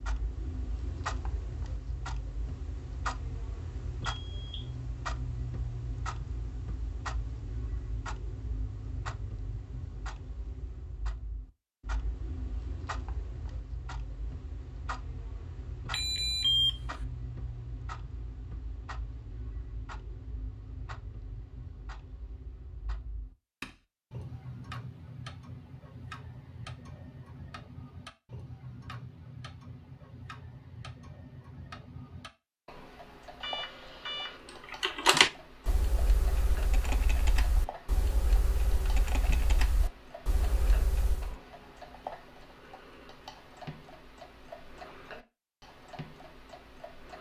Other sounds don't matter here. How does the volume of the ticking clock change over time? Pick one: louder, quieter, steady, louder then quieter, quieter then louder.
quieter.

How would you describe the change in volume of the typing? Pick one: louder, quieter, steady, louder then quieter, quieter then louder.
quieter.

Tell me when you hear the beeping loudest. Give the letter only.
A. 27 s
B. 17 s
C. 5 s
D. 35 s
B.